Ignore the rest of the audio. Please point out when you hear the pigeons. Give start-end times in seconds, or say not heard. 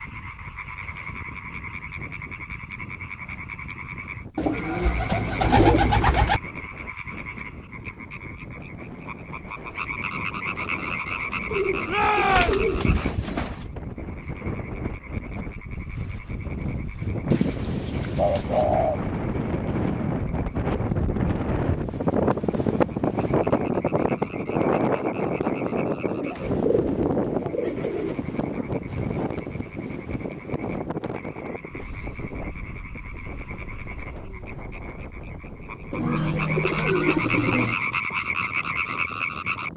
4.3-6.4, 11.5-13.7, 17.3-18.9, 26.1-28.1, 35.9-37.8.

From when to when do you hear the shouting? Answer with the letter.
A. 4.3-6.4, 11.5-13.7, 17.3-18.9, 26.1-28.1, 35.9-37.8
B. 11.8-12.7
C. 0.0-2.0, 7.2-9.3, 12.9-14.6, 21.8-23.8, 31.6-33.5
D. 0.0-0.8
B.